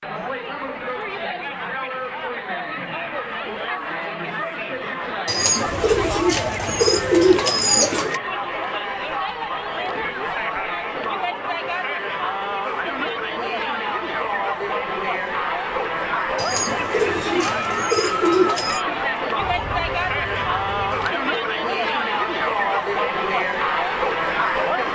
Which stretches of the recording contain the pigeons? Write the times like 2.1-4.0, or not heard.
5.2-8.2, 16.4-18.9.